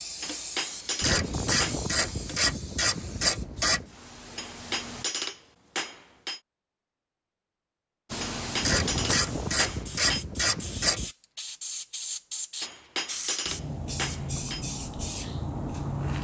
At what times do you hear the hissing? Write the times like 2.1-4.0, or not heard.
0.0-5.0, 8.1-16.1.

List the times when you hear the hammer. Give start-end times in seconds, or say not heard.
0.2-1.8, 4.3-6.4, 8.2-10.2, 12.6-14.7.